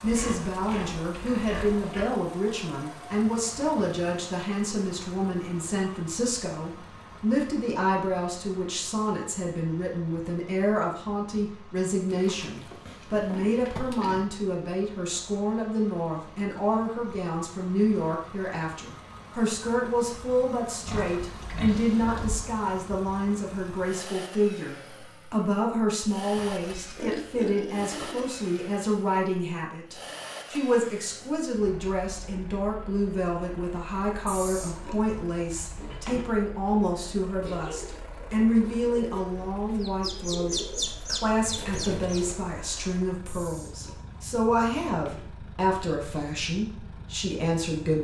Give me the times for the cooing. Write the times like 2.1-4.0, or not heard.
37.4-42.5.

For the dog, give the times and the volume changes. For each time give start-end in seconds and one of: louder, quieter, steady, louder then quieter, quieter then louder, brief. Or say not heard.
not heard.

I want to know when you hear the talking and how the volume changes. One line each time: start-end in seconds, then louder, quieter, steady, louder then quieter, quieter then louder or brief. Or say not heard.
0.0-47.9 steady.